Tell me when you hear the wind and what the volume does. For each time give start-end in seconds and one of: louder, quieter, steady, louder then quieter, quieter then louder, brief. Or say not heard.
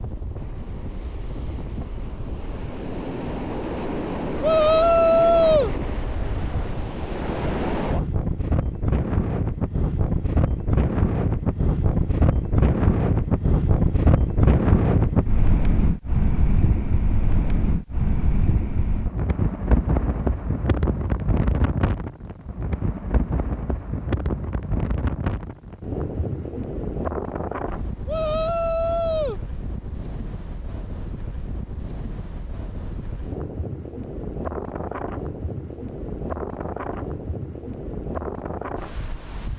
0.0-39.5 louder then quieter.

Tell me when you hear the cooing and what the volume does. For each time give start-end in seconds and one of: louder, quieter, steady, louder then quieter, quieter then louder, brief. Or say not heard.
not heard.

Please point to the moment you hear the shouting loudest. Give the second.
5 s.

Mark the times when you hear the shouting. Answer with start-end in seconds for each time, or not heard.
4.4-5.7, 28.1-29.4.